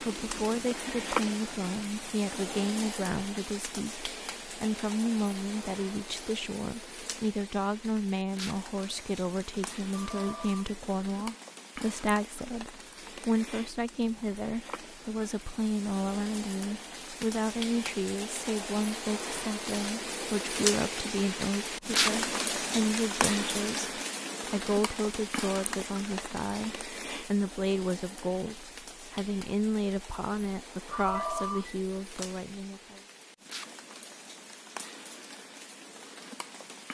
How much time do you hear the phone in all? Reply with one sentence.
You can hear the phone for 3 seconds altogether.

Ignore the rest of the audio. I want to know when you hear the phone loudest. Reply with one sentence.
The volume of the phone peaks at 31 seconds.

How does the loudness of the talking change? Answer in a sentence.
The loudness of the talking stays about the same.